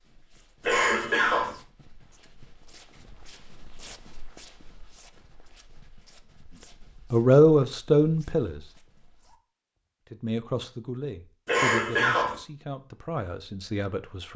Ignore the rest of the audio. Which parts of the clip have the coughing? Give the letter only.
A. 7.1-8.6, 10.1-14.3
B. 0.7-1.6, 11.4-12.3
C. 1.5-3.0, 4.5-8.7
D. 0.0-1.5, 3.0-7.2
B.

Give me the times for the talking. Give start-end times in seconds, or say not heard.
7.1-8.6, 10.1-14.3.